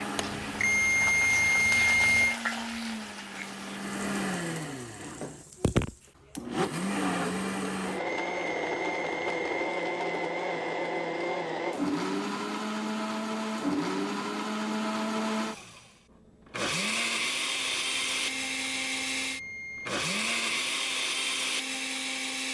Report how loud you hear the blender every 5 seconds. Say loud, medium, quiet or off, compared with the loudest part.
medium, loud, loud, loud, loud.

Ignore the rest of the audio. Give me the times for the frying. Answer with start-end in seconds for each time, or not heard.
0.0-6.2.